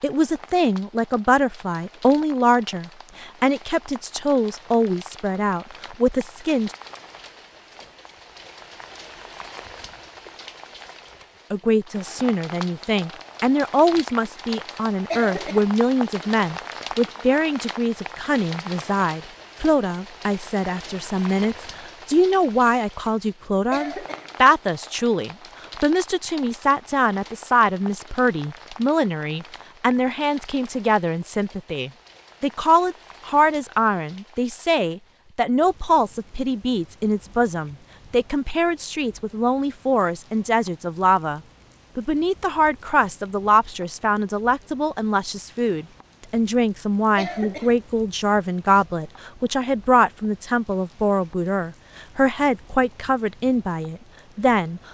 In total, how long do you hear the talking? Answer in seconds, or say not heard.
50 s.